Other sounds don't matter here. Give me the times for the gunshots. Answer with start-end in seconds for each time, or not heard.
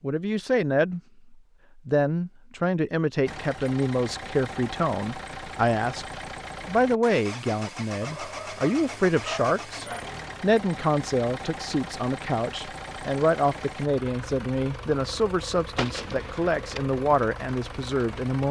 15.8-16.9.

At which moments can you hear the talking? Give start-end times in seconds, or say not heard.
0.0-18.4.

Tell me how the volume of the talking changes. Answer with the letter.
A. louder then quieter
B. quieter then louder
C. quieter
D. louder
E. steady
E.